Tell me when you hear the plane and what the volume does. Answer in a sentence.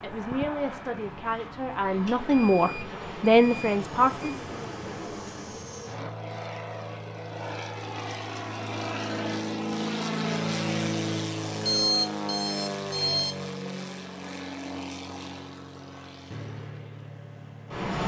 You can hear the plane from 0.0 to 18.0 s, getting louder then quieter.